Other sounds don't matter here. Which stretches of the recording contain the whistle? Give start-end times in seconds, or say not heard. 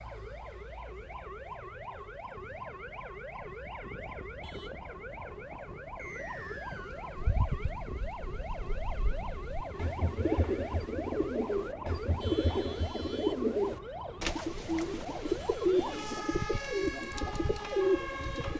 6.0-7.1.